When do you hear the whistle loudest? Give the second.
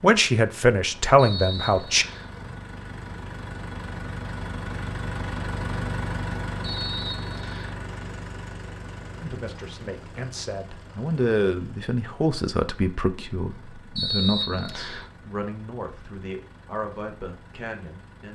14 s.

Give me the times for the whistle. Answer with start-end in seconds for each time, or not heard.
1.1-2.3, 6.6-7.8, 13.9-15.1.